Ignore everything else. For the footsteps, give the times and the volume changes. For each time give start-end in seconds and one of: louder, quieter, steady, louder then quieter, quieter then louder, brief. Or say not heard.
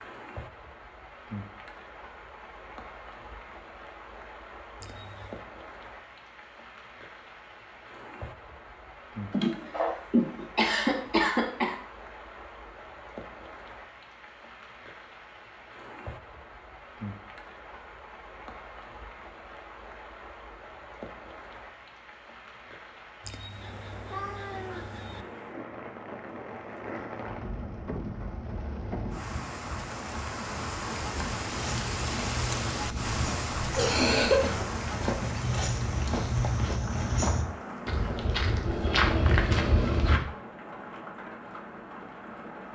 31.6-40.2 louder.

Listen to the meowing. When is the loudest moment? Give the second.
24 s.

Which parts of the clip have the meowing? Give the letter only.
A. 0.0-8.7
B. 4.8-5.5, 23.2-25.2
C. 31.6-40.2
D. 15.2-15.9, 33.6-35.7
B.